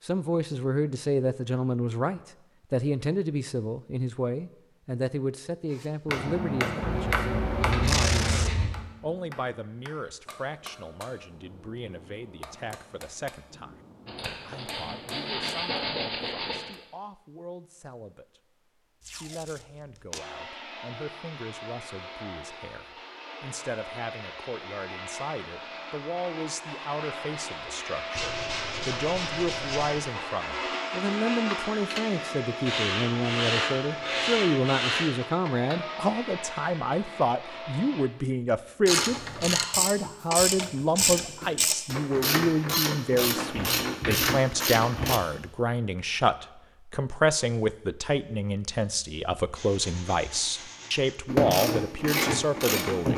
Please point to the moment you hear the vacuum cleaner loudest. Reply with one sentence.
The volume of the vacuum cleaner peaks at 31 seconds.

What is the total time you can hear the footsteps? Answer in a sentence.
You can't hear the footsteps here.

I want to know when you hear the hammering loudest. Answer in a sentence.
The volume of the hammering peaks at 7 seconds.